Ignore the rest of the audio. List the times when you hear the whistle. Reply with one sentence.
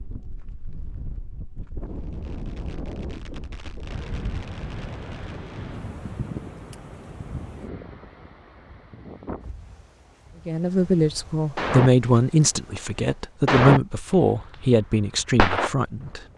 You can't hear the whistle here.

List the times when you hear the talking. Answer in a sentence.
The talking can be heard from 10.4 to 16.2 s.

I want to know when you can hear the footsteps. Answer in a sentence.
You can't hear the footsteps here.